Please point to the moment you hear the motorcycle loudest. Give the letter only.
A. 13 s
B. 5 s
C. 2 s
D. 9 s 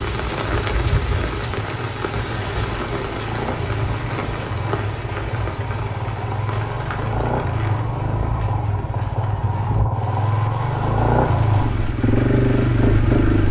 A.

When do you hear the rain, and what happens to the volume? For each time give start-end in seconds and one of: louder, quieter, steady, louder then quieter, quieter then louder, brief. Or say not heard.
0.0-13.4 quieter.